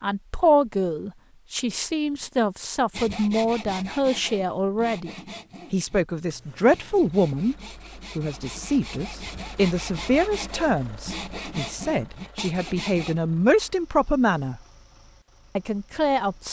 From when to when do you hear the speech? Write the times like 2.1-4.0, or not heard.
0.0-7.5, 8.2-14.6, 15.6-16.4.